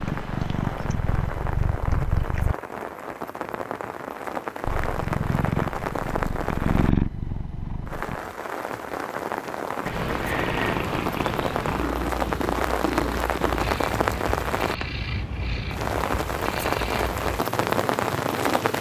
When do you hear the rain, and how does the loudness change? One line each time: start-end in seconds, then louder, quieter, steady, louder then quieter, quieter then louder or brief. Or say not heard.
0.0-18.7 louder.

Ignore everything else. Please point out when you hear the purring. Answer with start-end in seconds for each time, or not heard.
0.0-2.5, 4.7-8.2, 9.8-18.7.